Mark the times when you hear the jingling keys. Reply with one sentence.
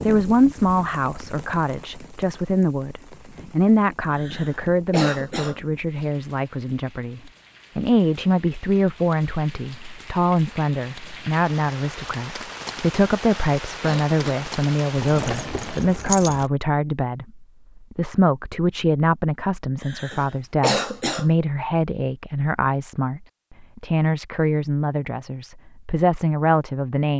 You can hear the jingling keys from 14.9 to 16.5 s.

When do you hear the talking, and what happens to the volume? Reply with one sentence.
The talking can be heard from 0.0 to 27.1 s, at a steady volume.